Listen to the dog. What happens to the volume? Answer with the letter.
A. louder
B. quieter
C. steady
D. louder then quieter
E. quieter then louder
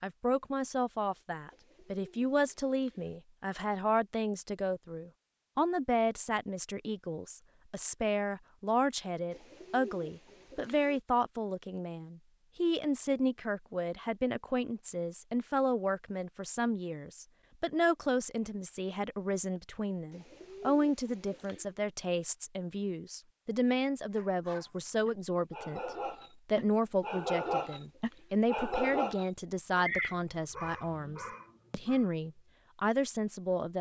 D.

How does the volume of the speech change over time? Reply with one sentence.
The loudness of the speech stays about the same.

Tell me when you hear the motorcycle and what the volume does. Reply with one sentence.
The motorcycle can't be heard in this clip.